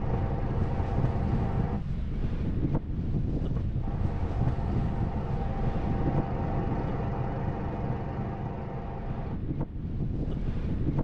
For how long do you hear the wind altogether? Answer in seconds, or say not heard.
11 s.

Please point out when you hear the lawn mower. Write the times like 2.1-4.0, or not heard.
0.0-1.8, 3.8-9.3.